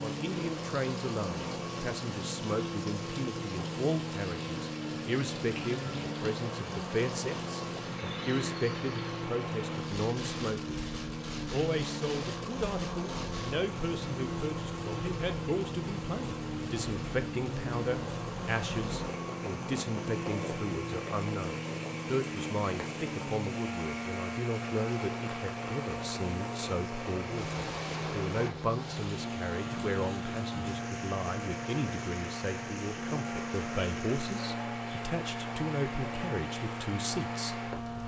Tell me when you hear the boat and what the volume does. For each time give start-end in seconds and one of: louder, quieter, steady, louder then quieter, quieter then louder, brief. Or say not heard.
0.0-38.0 steady.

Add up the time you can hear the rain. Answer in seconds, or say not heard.
38 s.